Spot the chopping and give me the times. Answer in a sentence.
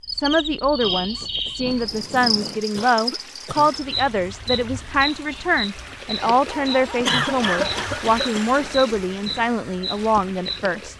The chopping can't be heard in this clip.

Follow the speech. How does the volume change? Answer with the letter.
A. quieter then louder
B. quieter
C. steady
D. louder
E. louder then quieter
C.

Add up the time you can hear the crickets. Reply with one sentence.
You can hear the crickets for 11 seconds altogether.